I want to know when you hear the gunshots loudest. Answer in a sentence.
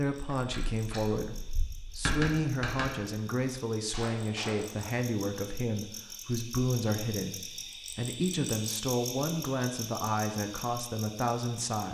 The volume of the gunshots peaks at 2 seconds.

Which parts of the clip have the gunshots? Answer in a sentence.
You can hear the gunshots from 0.4 to 3.0 s and from 3.9 to 4.6 s.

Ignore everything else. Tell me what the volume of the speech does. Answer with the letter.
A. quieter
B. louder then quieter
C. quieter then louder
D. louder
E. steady
E.